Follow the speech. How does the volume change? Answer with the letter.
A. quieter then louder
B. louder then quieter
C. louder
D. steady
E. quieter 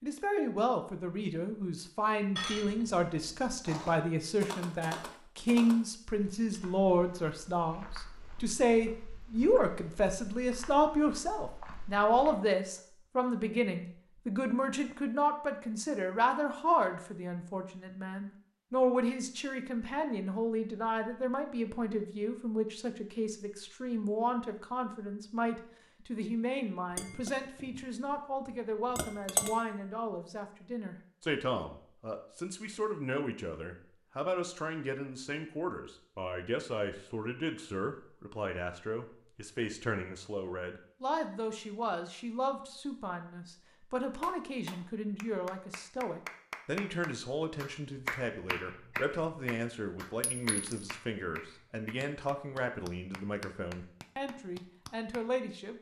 E.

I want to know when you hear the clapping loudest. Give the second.
48 s.